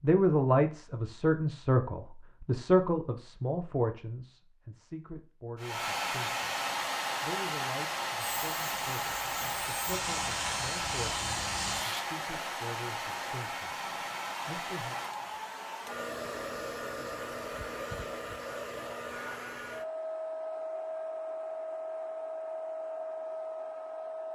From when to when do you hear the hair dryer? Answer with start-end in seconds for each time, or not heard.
5.5-24.3.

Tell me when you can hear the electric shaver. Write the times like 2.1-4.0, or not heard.
8.4-12.1.